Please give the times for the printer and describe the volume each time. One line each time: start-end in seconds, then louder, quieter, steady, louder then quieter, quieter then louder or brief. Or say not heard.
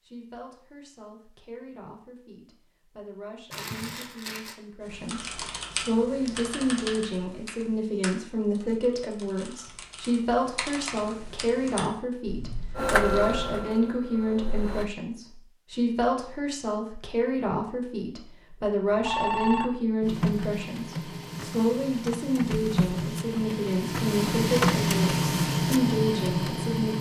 12.8-14.9 brief
20.0-26.9 louder.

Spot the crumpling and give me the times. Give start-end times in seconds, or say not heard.
3.5-4.5.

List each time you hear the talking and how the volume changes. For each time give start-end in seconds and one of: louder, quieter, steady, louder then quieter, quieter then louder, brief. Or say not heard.
0.0-26.9 louder.